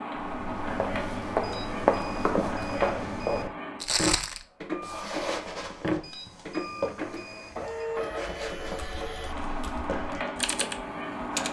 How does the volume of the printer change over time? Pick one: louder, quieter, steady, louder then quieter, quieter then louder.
steady.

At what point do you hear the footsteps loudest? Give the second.
2 s.